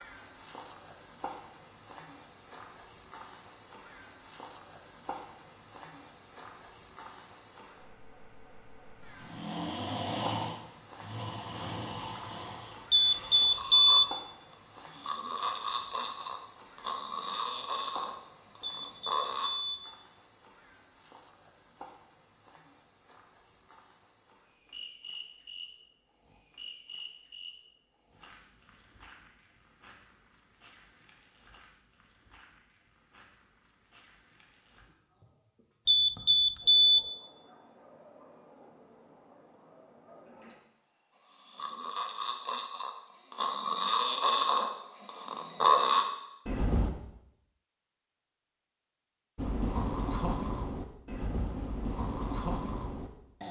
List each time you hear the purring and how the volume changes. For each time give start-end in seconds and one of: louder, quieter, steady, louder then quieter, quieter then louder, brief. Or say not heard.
not heard.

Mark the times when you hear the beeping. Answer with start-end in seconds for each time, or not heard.
12.9-14.1, 18.6-19.8, 35.9-37.0.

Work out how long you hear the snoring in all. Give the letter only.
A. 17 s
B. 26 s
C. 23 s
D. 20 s
D.